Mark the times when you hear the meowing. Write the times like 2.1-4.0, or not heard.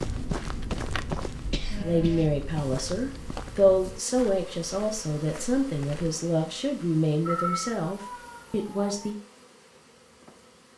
1.7-2.4, 7.2-9.1.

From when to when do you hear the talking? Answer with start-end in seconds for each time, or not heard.
1.8-9.2.